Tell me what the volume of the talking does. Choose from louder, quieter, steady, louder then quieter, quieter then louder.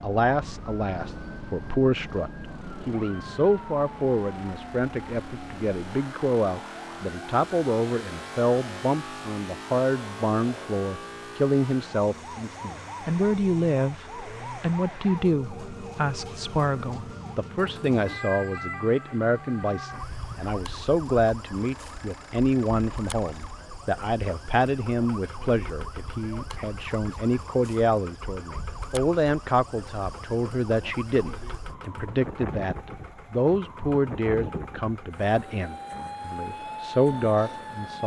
steady.